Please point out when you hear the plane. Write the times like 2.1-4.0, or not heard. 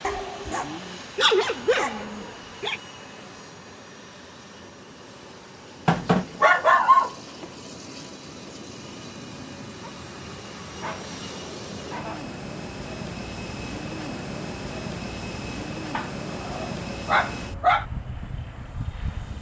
0.0-19.3.